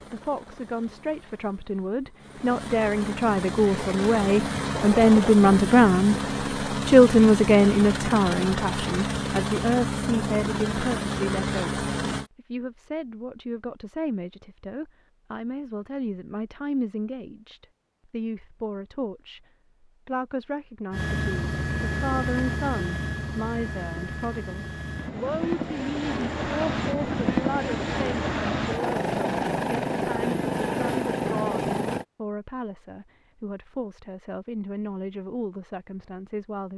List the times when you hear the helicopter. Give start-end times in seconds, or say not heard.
0.0-12.3, 20.9-32.0.